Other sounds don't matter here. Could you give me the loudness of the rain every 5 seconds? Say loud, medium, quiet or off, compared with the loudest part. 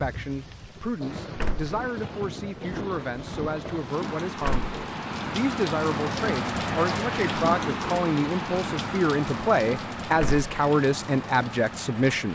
medium, loud, medium.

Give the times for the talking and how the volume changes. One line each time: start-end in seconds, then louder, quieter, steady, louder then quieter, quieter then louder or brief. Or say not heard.
0.0-12.2 louder.